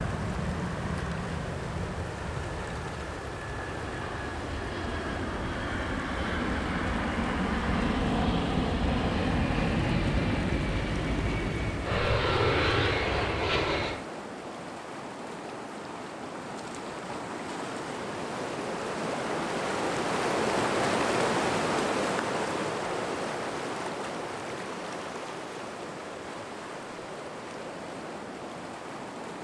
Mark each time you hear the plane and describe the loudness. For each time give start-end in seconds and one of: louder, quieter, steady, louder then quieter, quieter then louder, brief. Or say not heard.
0.0-14.1 louder.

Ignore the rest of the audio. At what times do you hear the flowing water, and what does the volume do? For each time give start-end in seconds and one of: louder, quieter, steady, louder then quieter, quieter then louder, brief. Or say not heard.
0.0-29.3 louder then quieter.